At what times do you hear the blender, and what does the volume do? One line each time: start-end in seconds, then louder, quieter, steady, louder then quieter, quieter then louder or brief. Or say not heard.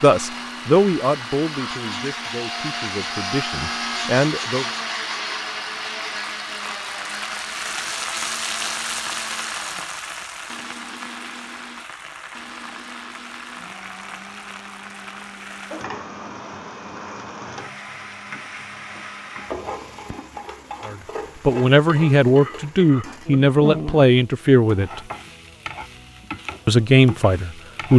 0.0-20.4 quieter.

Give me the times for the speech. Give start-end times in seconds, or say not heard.
0.0-4.7, 20.9-25.0, 26.6-27.9.